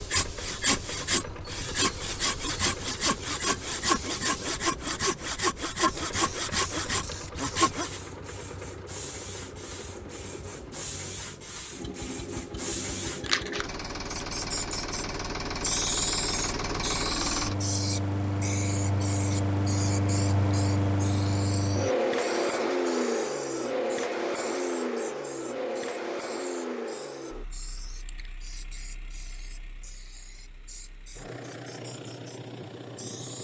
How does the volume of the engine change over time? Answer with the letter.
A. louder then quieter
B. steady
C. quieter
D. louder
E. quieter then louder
A.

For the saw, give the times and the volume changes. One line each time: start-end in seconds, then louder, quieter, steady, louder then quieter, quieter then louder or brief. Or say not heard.
0.0-8.0 steady.